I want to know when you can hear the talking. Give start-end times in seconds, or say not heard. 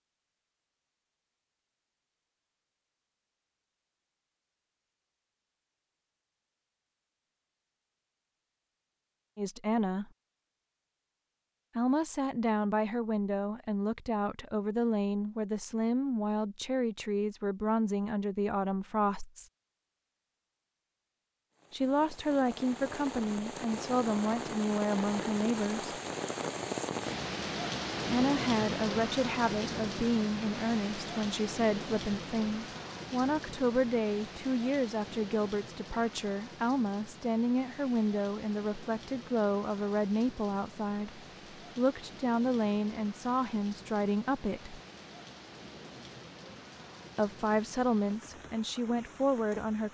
9.3-10.1, 11.8-19.4, 21.7-25.9, 28.1-44.8, 47.1-49.8.